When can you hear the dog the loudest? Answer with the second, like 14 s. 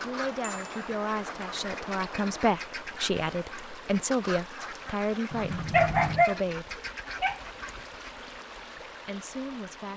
6 s.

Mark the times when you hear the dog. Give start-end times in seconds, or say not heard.
5.7-6.4, 7.2-7.8.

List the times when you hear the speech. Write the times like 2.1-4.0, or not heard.
0.0-6.8, 8.8-9.9.